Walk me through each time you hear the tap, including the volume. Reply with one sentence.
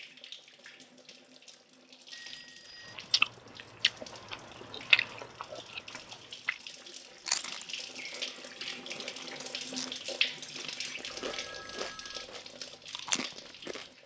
The tap can be heard from 0.0 to 14.0 s, getting louder then quieter.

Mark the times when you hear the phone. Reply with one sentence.
You can hear the phone from 2.1 to 3.0 s and from 11.2 to 12.3 s.